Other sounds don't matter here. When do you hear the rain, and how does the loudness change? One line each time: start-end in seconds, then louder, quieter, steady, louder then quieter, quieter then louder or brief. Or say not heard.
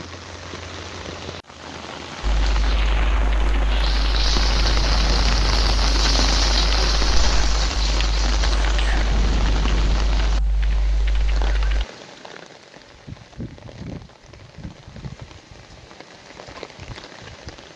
0.0-17.7 louder then quieter.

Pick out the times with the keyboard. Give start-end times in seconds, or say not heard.
2.2-11.8.